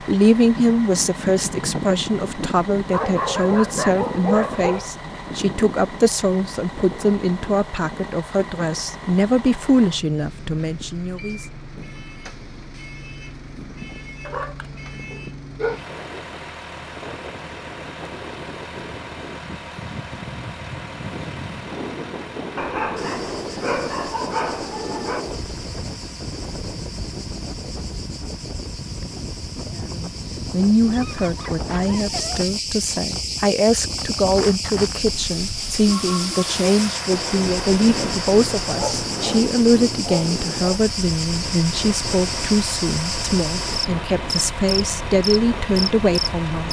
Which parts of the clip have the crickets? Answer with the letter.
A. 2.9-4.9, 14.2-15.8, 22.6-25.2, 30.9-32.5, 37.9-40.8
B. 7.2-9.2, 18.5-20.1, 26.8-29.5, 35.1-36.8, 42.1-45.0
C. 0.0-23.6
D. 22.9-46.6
D.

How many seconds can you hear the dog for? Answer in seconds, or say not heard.
11 s.